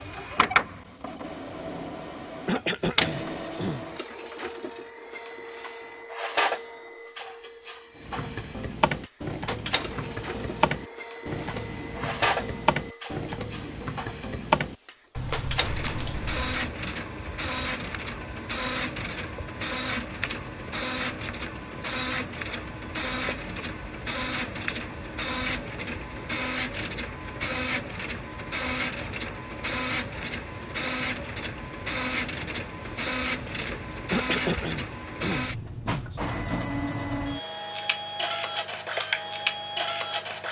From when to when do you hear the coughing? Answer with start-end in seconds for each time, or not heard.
2.5-3.9, 34.1-36.0.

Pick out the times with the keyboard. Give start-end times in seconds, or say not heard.
8.0-16.6.